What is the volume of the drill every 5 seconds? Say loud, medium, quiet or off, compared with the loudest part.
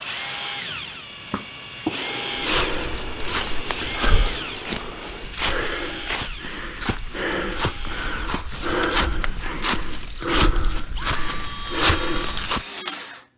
loud, medium, loud.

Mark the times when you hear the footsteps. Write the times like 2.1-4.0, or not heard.
2.4-12.7.